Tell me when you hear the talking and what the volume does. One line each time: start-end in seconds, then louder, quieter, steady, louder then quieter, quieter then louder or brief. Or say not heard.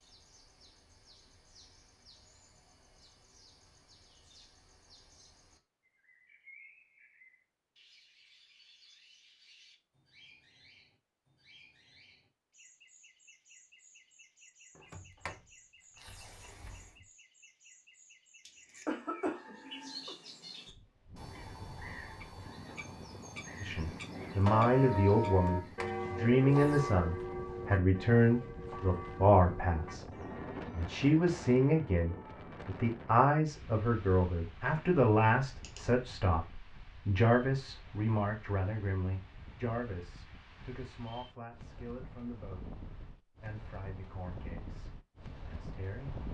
23.6-46.2 quieter.